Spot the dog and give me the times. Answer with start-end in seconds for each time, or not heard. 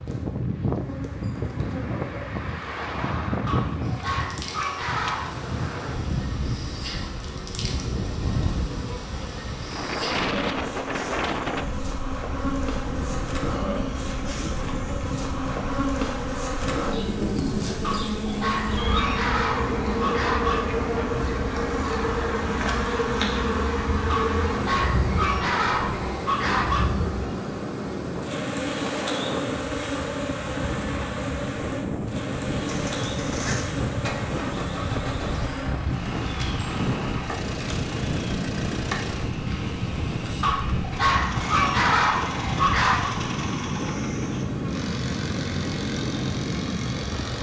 3.5-5.2, 17.8-20.8, 24.1-26.9, 40.4-43.1.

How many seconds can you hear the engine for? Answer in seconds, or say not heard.
15 s.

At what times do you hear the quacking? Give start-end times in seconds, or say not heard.
not heard.